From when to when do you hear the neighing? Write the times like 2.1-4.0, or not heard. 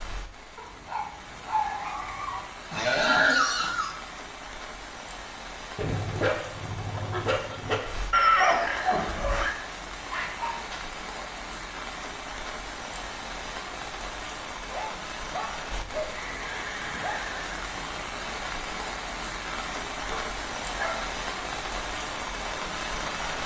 2.7-4.0, 8.1-9.6, 16.1-17.9.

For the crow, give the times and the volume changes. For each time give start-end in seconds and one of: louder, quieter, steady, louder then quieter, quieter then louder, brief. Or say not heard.
not heard.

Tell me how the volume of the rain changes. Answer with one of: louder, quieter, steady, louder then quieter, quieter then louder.
louder.